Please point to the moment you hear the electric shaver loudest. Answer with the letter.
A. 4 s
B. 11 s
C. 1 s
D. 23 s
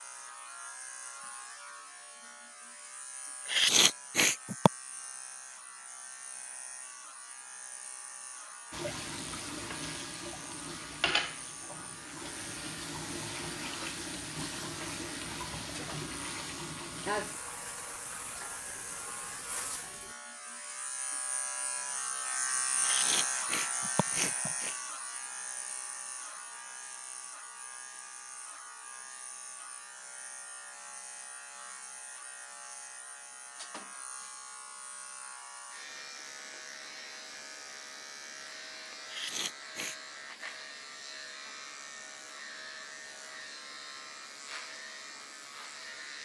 D.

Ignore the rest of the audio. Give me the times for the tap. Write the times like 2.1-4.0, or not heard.
8.7-20.1.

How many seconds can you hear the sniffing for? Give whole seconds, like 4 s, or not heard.
4 s.